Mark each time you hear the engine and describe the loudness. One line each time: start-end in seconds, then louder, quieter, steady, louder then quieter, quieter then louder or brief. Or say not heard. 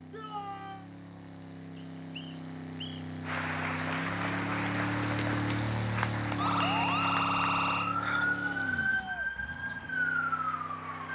0.0-11.0 louder then quieter.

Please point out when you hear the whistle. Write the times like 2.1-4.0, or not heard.
1.8-3.0, 6.6-8.0.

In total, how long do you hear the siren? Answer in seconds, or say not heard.
5 s.